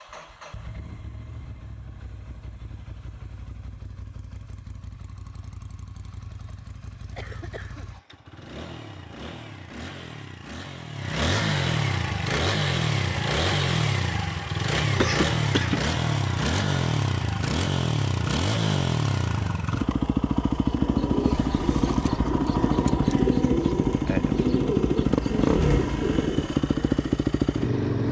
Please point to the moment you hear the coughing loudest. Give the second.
15 s.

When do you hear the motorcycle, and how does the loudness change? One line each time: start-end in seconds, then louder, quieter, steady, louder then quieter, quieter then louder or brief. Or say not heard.
0.0-28.0 louder.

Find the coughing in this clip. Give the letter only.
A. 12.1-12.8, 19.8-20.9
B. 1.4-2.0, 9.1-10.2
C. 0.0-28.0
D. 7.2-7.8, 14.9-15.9
D.